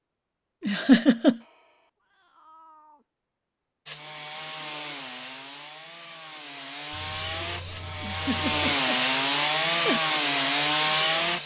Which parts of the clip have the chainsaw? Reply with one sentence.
The chainsaw can be heard from 3.9 to 11.4 s.